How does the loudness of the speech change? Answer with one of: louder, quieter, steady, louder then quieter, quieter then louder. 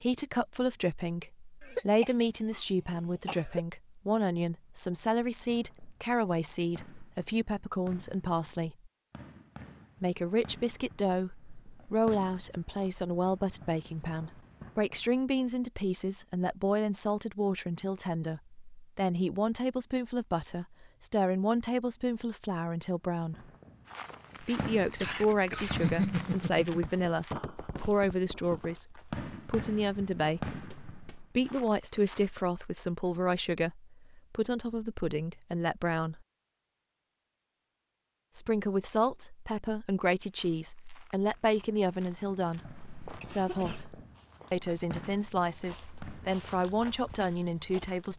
steady.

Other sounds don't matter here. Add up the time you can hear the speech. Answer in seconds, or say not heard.
44 s.